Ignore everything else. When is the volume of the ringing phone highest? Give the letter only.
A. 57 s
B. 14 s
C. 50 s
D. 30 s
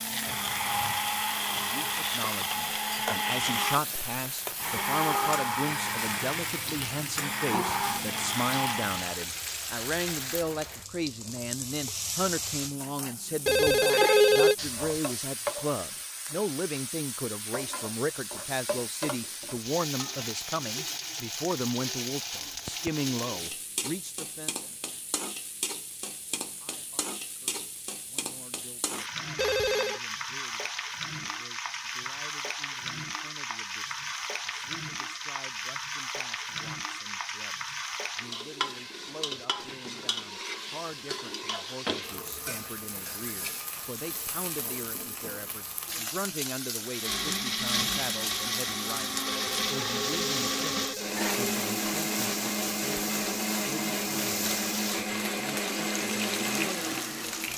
B.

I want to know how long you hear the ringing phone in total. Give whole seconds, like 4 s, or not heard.
4 s.